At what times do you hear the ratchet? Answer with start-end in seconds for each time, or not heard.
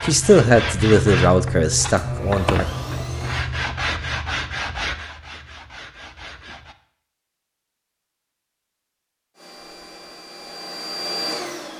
not heard.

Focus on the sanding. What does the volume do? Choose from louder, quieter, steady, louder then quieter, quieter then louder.
quieter.